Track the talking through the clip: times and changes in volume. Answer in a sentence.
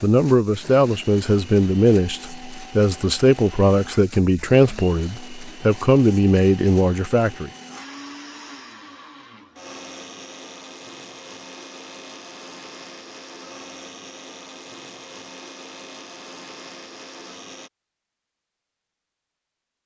The talking can be heard from 0.0 to 7.5 s, at a steady volume.